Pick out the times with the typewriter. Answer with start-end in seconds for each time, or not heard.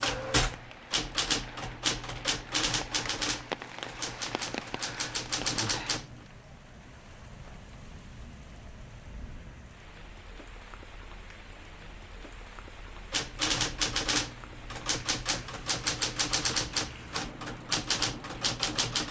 0.0-6.2, 13.1-19.0.